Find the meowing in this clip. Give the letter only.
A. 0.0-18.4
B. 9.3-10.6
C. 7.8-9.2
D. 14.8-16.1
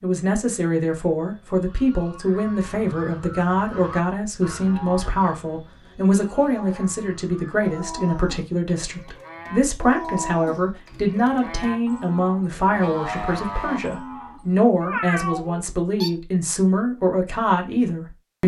D.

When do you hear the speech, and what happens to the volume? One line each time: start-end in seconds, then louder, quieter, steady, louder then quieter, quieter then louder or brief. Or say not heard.
0.0-18.4 steady.